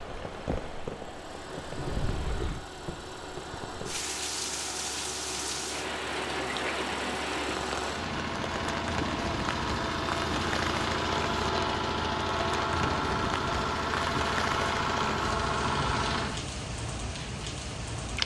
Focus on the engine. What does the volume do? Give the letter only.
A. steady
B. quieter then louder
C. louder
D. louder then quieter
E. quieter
C.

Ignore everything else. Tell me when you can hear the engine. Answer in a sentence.
You can hear the engine from 0.0 to 16.3 s.